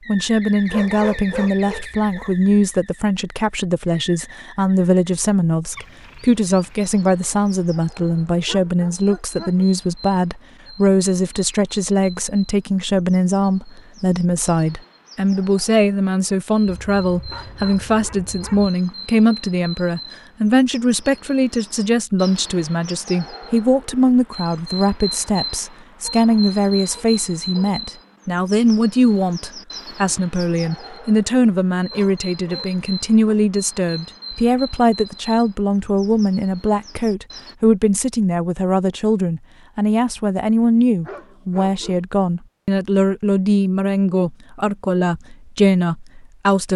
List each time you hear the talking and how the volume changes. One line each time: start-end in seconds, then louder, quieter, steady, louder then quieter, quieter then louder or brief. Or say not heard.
0.1-46.7 steady.